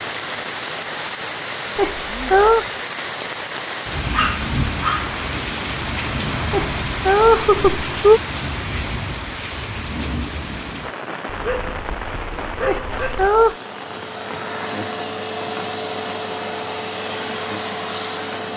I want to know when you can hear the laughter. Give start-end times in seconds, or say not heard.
1.8-2.6, 6.5-8.2, 12.7-13.6.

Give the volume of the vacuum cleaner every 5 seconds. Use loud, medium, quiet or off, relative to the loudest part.
off, off, medium, loud.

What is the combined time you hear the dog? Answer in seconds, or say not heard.
3 s.